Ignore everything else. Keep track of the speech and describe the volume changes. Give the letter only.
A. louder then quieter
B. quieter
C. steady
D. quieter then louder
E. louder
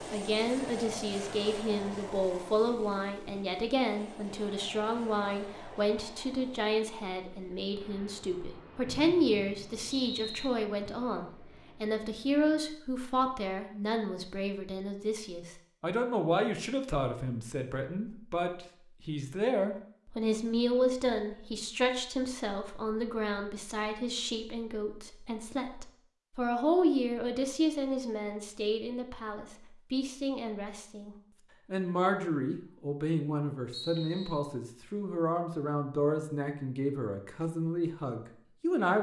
C.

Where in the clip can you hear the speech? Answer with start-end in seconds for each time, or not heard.
0.0-38.9.